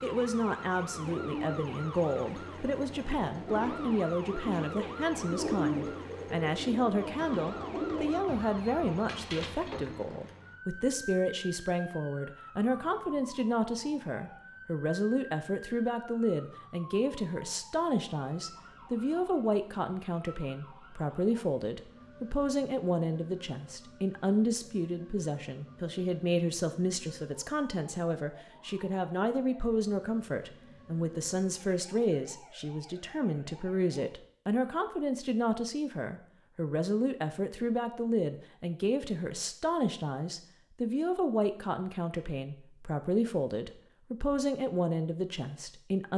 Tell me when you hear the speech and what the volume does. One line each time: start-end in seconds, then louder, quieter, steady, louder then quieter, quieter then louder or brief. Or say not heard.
0.0-46.1 steady.